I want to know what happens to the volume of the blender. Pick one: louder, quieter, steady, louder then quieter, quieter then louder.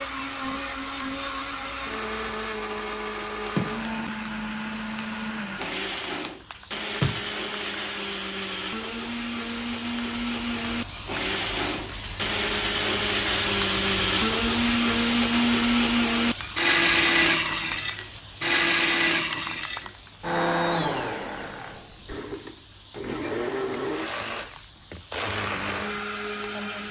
louder then quieter.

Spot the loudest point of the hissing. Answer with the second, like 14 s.
14 s.